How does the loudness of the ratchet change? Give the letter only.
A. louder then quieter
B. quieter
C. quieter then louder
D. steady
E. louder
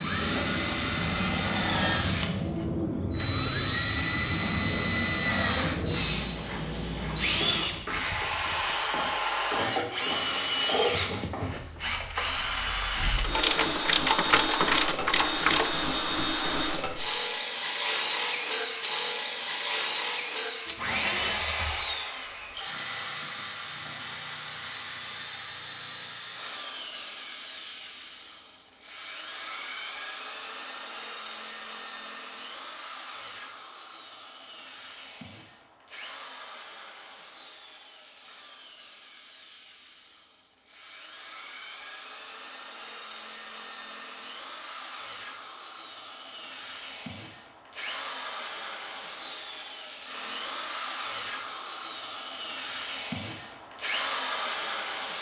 E.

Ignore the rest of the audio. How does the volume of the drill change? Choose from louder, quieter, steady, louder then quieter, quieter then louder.
quieter then louder.